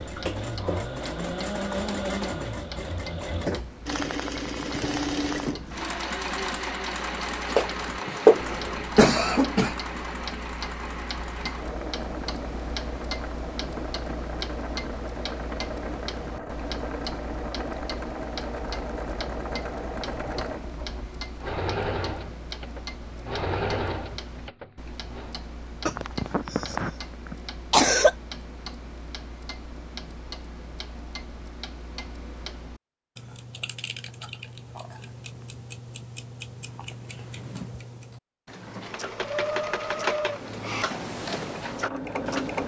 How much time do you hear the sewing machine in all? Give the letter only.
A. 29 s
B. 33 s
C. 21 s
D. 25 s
A.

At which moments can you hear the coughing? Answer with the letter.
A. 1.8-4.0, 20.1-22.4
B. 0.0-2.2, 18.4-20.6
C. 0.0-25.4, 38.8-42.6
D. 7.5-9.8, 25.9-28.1
D.